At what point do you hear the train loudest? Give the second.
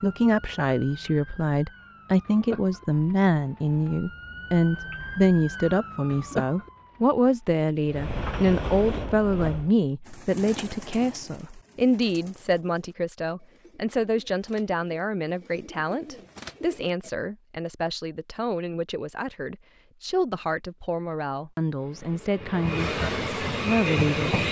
24 s.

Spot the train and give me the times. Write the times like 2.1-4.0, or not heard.
7.8-9.7, 21.8-24.4.